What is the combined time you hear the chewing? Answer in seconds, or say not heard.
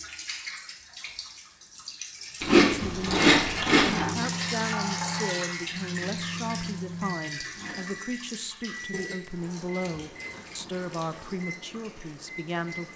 3 s.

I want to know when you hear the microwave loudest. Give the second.
4 s.